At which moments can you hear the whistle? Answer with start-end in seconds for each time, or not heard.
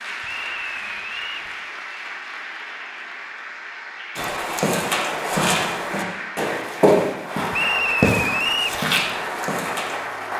0.2-1.5, 7.5-8.8.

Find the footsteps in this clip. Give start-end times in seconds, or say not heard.
4.2-10.0.